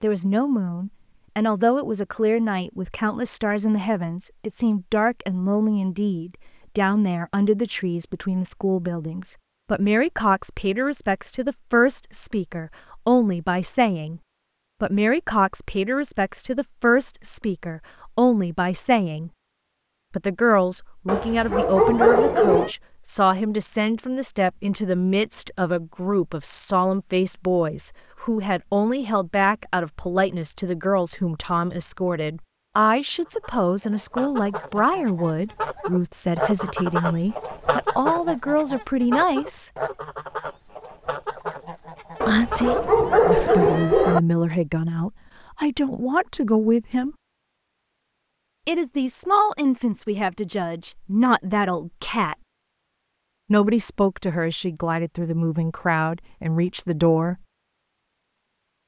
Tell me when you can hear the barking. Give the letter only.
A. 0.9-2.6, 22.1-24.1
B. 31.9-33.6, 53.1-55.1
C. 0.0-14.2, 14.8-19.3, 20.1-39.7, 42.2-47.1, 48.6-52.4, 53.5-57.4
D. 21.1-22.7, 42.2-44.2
D.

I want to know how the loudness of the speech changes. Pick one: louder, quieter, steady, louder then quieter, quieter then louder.
steady.